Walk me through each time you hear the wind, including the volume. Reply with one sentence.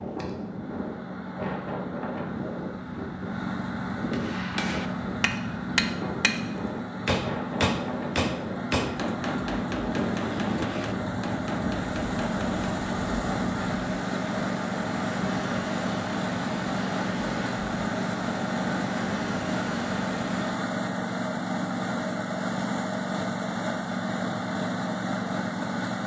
The wind can be heard from 0.0 to 20.6 s, at a steady volume.